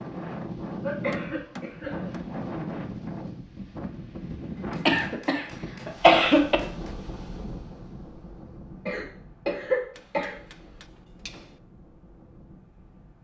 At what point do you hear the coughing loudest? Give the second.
6 s.